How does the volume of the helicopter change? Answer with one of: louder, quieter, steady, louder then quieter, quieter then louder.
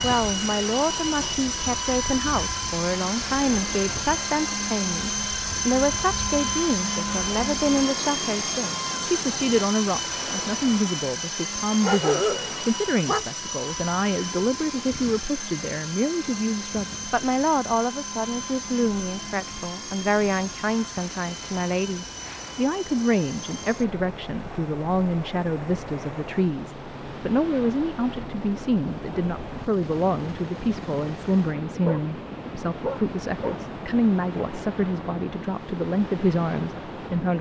quieter.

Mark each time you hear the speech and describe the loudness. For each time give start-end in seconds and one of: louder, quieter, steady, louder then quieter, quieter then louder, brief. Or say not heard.
0.0-37.3 steady.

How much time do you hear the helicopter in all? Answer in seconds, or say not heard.
37 s.